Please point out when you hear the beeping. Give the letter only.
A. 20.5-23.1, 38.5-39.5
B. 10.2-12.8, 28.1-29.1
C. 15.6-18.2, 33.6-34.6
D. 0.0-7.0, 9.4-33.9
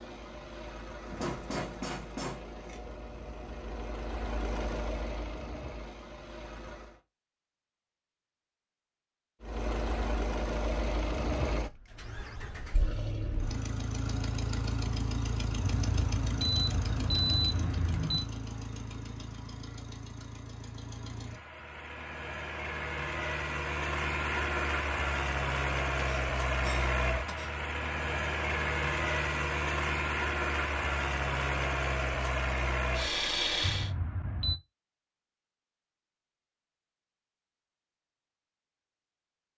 C.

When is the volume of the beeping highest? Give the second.
17 s.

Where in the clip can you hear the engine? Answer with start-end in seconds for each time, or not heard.
0.0-7.0, 9.4-33.9.